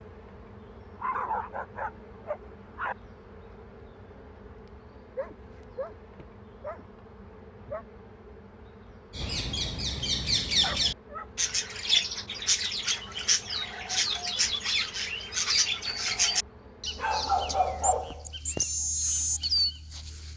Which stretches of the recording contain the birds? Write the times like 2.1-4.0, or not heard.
9.1-20.3.